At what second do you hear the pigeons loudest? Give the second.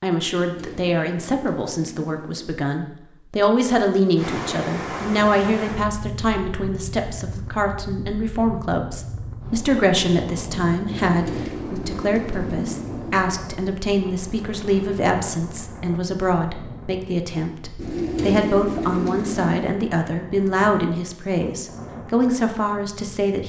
18 s.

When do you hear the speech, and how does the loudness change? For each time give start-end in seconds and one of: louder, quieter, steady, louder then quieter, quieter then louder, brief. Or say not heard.
0.0-23.4 steady.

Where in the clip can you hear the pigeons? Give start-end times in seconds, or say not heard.
0.3-2.5, 11.1-13.2, 17.8-19.7.